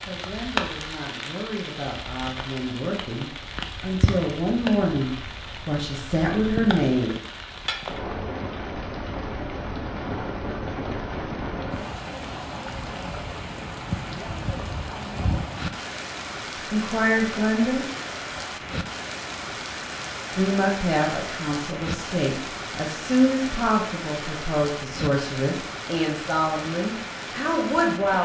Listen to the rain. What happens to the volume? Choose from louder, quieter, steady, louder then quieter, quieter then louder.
steady.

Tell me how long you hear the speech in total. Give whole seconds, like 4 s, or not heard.
16 s.